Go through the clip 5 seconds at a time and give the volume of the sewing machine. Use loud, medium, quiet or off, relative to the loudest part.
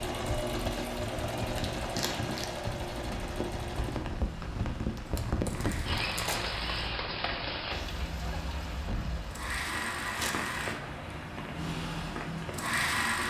loud, medium, loud.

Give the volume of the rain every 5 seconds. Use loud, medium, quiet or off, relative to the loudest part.
loud, loud, medium.